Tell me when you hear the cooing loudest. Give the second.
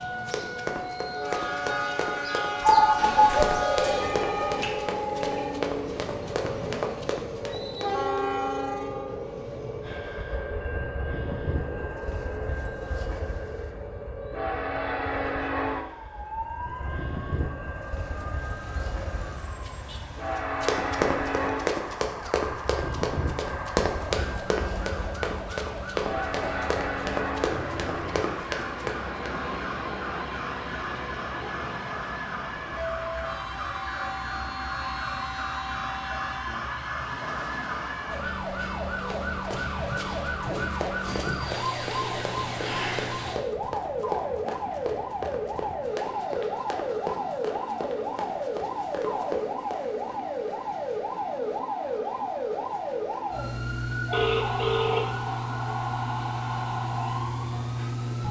3 s.